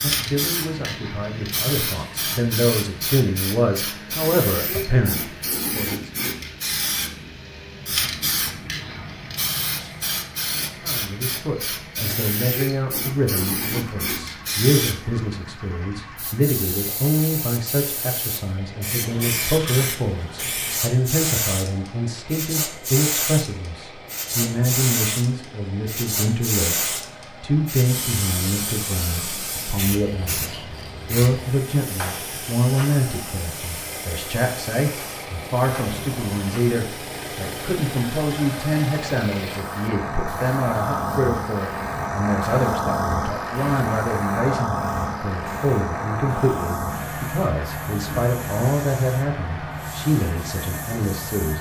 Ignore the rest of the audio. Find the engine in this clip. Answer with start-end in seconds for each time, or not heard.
0.1-51.5.